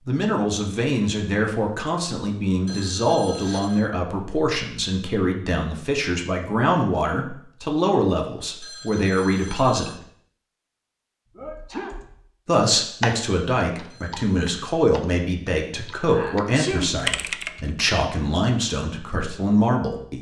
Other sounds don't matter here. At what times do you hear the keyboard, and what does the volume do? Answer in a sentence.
You can hear the keyboard briefly from 11.3 to 12.2 s; and from 13.0 to 17.9 s, getting louder.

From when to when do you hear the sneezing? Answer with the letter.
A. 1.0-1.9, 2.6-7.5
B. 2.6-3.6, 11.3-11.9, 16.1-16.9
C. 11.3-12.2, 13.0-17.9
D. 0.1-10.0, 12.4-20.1
B.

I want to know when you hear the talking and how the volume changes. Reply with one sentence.
You can hear the talking from 0.1 to 10.0 s, at a steady volume; and from 12.4 to 20.1 s, at a steady volume.